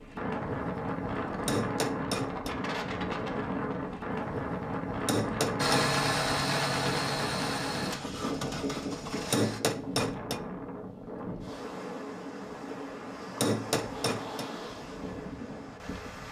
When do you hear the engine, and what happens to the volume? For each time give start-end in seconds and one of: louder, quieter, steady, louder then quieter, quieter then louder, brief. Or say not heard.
5.5-9.6 quieter.